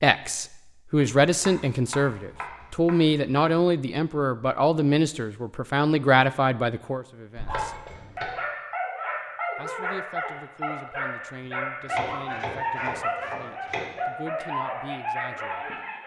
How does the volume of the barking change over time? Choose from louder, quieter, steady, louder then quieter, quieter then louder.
steady.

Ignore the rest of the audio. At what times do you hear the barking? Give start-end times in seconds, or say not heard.
7.5-16.0.